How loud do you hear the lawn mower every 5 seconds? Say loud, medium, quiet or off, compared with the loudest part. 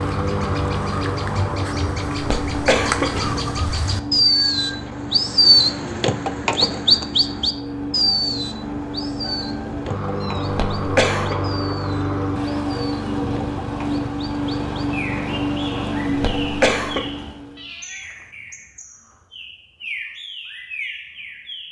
loud, medium, loud, loud, off.